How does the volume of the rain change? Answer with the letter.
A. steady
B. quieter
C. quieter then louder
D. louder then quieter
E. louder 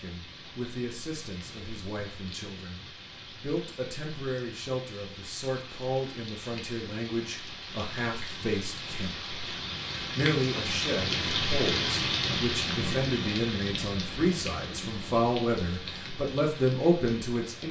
D.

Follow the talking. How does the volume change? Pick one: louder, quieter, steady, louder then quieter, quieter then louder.
louder.